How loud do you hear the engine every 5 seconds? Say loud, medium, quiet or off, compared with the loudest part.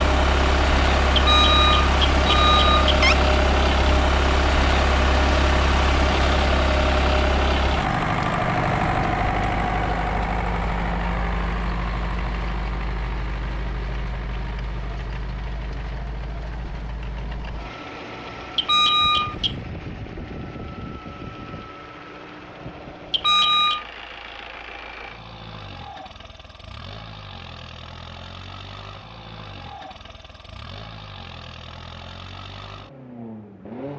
loud, loud, medium, quiet, quiet, quiet, quiet.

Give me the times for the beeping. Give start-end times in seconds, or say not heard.
1.1-3.1, 18.6-19.6, 23.1-23.9.